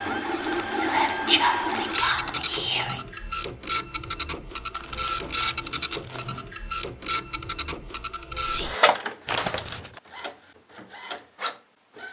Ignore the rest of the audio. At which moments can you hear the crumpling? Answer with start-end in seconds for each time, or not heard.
0.4-2.4, 4.7-6.3, 9.2-10.0.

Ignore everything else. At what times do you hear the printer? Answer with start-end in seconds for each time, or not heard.
0.0-12.0.